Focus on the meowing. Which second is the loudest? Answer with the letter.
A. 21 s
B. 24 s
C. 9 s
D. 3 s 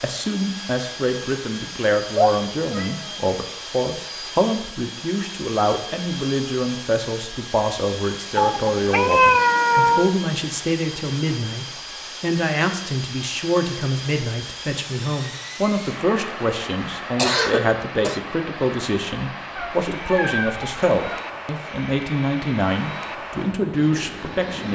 C.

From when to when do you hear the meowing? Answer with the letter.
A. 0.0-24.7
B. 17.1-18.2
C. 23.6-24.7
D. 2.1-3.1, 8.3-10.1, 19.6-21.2
D.